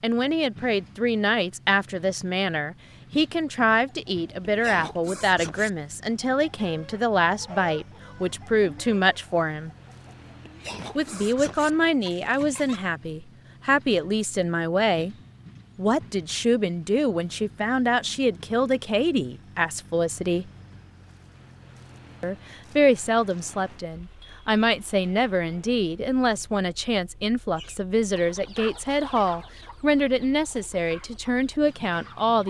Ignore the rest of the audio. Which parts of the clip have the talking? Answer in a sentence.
The talking can be heard from 0.0 to 9.7 s, from 10.9 to 15.2 s, from 15.8 to 20.5 s and from 22.2 to 32.4 s.